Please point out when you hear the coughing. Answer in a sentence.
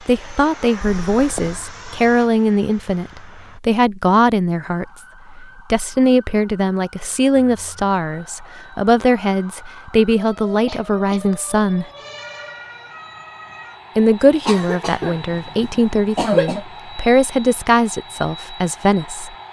The coughing can be heard from 0.8 to 1.6 s, from 10.7 to 11.2 s, from 14.4 to 15.2 s and from 16.1 to 16.6 s.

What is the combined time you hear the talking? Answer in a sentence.
The talking can be heard for 17 seconds in total.